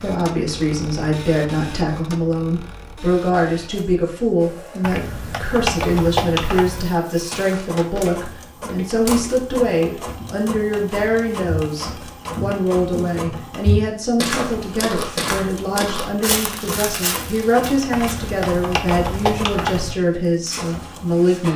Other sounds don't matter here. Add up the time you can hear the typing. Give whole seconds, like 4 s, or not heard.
4 s.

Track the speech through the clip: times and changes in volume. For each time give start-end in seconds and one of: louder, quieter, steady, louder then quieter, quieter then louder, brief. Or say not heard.
0.0-21.5 steady.